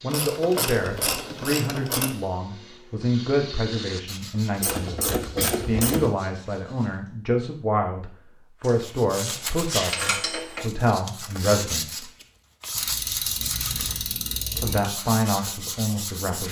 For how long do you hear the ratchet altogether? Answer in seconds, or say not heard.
8 s.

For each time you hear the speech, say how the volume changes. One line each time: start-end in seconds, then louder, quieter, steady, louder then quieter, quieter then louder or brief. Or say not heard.
0.0-12.1 steady
14.6-16.4 brief.